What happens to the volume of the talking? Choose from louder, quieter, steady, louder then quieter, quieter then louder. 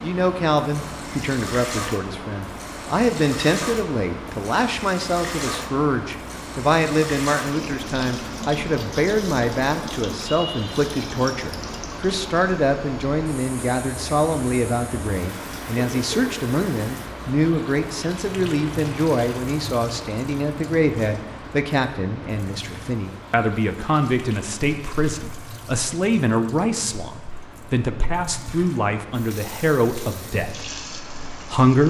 steady.